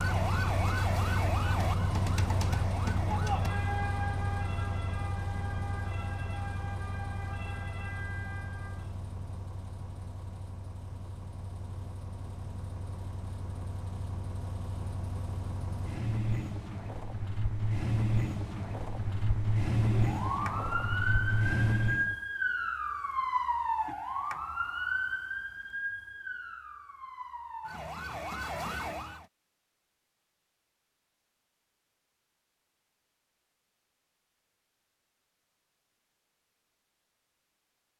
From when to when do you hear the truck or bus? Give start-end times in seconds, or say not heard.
0.0-22.1.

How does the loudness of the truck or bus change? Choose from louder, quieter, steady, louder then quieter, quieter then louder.
quieter then louder.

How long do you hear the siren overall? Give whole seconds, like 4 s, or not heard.
18 s.